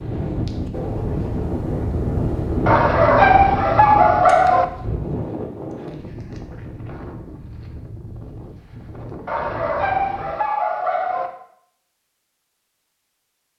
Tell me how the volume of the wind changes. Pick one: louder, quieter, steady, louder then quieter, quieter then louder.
quieter.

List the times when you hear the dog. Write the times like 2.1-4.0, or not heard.
2.6-4.7, 9.2-11.3.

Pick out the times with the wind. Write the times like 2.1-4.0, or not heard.
0.0-10.3.